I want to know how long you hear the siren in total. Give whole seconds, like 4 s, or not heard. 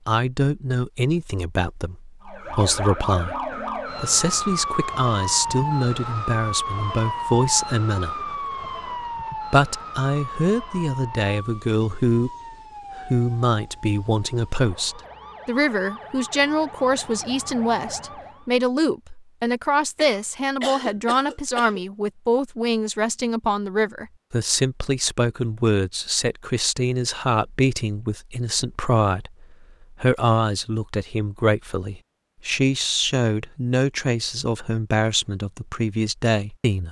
16 s.